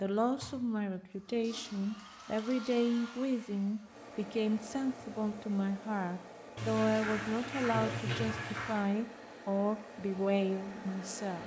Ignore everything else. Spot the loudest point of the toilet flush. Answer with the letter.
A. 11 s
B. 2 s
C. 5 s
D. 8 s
D.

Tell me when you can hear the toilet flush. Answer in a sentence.
The toilet flush can be heard from 1.2 to 2.9 s and from 6.5 to 8.8 s.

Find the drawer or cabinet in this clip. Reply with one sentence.
The drawer or cabinet can't be heard in this clip.